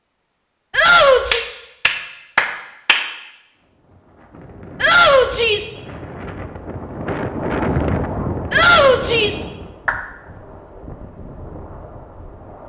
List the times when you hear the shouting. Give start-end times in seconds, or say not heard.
0.7-1.4, 4.8-5.8, 8.5-9.4.